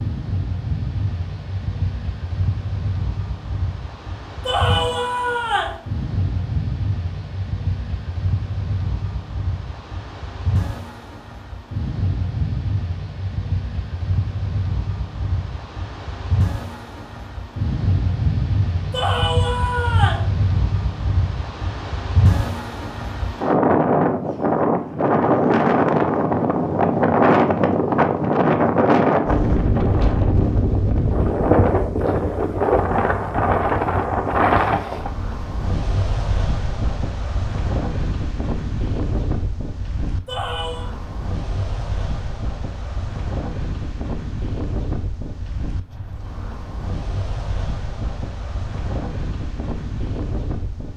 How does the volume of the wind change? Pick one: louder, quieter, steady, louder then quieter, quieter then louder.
louder then quieter.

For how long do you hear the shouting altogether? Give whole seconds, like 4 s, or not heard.
3 s.